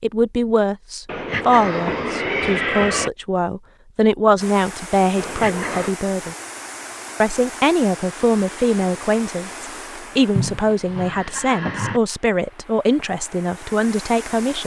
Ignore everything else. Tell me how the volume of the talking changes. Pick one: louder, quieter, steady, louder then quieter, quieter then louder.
steady.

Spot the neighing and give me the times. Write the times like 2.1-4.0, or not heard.
1.1-3.1, 5.2-6.0, 10.3-12.0.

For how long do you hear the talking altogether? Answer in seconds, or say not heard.
14 s.